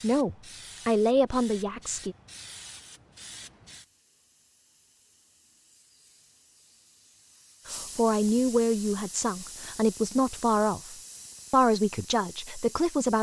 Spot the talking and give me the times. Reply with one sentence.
The talking can be heard from 0.0 to 2.1 s and from 7.7 to 13.1 s.